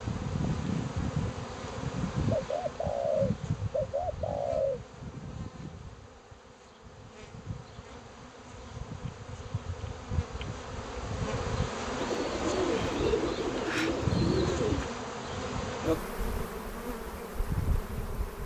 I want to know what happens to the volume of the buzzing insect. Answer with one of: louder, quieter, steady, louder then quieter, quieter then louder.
quieter then louder.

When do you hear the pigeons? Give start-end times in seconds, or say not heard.
2.3-4.8, 11.9-14.9.